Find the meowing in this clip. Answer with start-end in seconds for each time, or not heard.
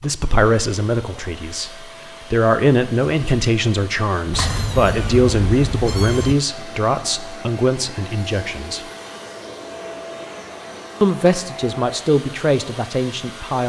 4.3-6.3.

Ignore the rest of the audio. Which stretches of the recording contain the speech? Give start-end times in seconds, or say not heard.
0.0-8.8, 11.0-13.6.